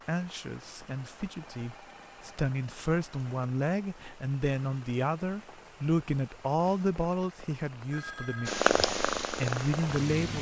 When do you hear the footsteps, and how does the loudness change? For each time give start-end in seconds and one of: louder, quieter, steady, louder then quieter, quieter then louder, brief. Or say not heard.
not heard.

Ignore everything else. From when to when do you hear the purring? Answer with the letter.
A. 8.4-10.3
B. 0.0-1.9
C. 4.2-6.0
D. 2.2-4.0
A.